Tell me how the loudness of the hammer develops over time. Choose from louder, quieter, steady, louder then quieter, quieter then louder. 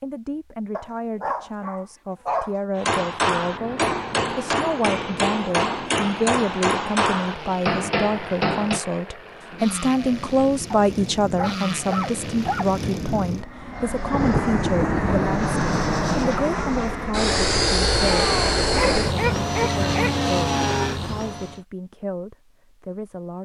steady.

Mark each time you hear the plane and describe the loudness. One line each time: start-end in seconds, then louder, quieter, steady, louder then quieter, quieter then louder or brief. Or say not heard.
3.4-21.6 louder.